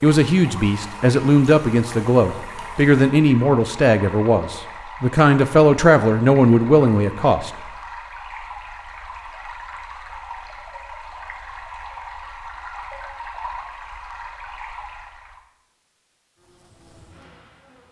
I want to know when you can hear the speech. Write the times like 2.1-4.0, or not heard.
0.0-7.5.